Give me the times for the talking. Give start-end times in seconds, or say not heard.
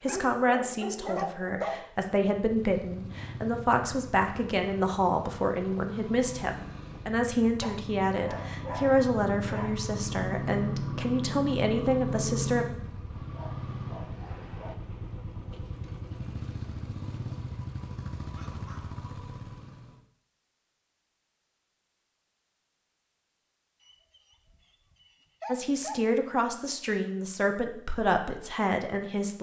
0.0-12.7, 25.4-29.3.